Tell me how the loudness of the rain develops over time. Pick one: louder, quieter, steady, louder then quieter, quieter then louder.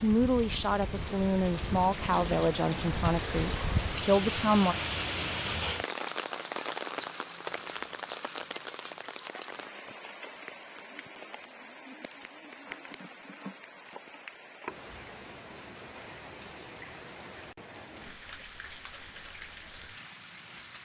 quieter.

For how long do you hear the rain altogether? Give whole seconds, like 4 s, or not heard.
21 s.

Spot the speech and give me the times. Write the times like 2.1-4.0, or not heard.
0.0-4.8.